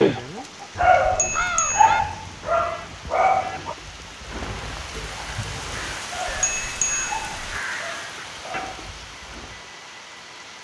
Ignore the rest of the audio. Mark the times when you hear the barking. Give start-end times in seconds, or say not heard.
0.8-3.8, 6.0-8.9.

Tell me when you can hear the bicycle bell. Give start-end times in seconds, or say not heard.
1.1-1.9, 6.3-7.6.